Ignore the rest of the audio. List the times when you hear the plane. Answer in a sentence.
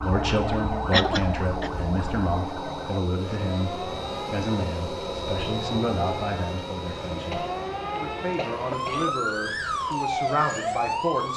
You can hear the plane from 0.0 to 11.3 s.